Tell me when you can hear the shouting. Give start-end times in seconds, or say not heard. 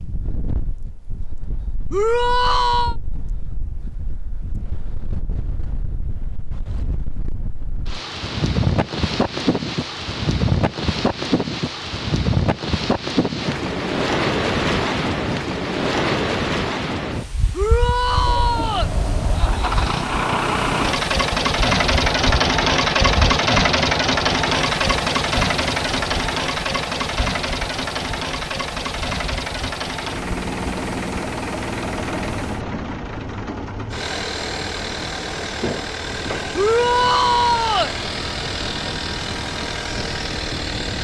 1.9-3.0, 17.5-18.9, 36.5-38.0.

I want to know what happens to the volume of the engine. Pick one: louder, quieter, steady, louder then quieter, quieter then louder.
quieter.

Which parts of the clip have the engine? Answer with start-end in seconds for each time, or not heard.
18.0-40.9.